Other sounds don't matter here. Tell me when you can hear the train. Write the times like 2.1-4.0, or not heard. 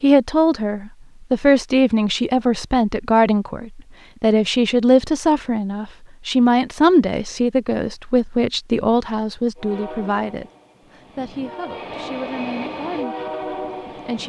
9.6-14.2.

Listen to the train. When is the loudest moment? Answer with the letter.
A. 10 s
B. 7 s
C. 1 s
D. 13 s
D.